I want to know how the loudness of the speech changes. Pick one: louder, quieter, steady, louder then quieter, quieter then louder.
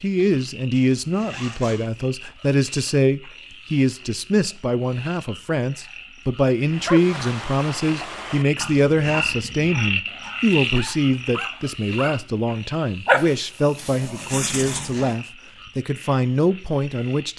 steady.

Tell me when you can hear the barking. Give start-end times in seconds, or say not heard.
6.7-12.2, 13.1-15.1.